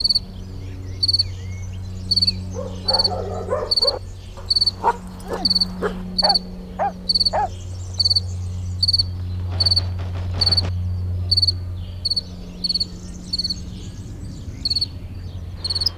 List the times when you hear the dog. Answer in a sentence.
You can hear the dog from 2.5 to 8.0 s.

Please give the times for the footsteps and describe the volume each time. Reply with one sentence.
You can't hear the footsteps here.